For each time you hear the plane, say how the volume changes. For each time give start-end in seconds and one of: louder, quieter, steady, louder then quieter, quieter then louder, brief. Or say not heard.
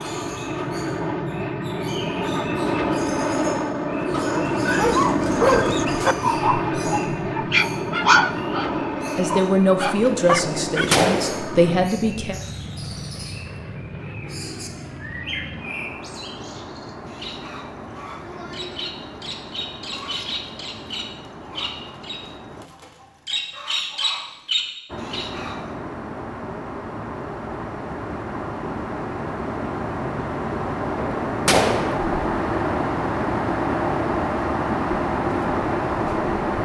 0.0-22.7 quieter
24.9-36.6 louder.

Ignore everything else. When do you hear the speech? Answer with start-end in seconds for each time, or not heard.
9.2-12.4.